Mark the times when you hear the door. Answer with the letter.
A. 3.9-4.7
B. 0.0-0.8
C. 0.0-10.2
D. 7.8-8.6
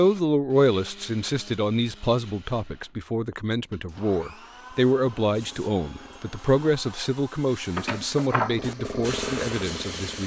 D.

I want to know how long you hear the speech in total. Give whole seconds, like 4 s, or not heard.
10 s.